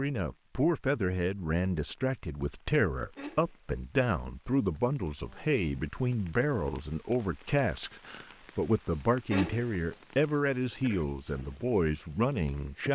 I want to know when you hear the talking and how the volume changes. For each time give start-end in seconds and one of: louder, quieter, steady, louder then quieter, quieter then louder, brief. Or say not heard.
0.0-12.9 steady.